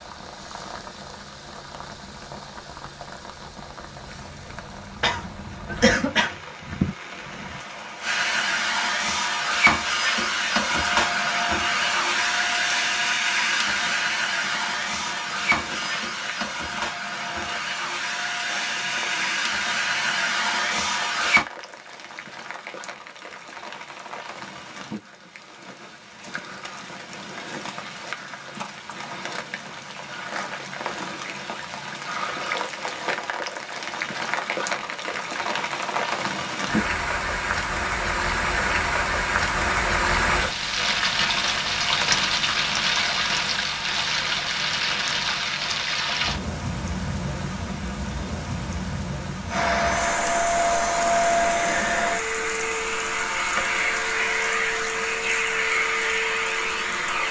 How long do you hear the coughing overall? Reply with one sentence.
The coughing can be heard for 2 seconds in total.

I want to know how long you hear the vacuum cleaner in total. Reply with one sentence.
You can hear the vacuum cleaner for 21 seconds altogether.